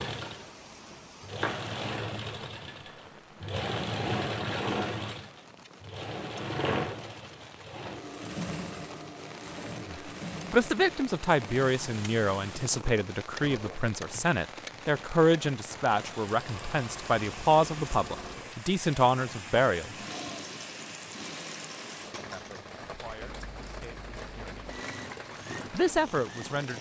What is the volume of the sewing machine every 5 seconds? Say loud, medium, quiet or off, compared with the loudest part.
loud, loud, medium, medium, medium, medium.